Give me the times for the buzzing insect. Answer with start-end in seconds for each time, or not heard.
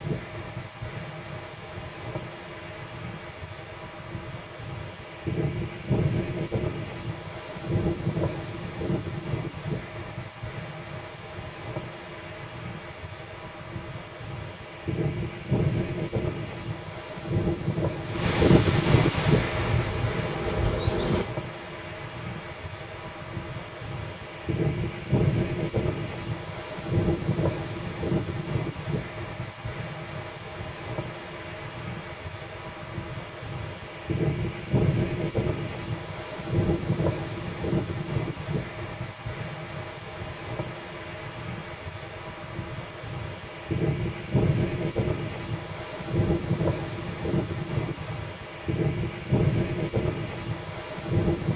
19.4-21.2.